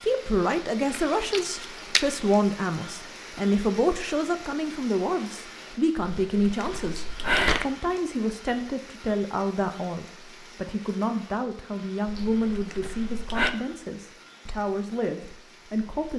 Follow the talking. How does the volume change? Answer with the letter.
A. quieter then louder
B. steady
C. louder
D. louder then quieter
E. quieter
E.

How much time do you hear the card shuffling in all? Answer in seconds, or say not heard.
4 s.